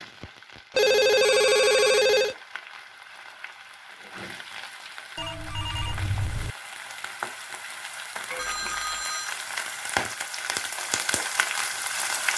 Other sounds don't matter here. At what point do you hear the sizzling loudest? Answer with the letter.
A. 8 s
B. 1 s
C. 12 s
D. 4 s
C.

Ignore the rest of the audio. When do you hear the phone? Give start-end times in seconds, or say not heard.
0.8-2.4, 5.2-6.5, 8.3-9.3.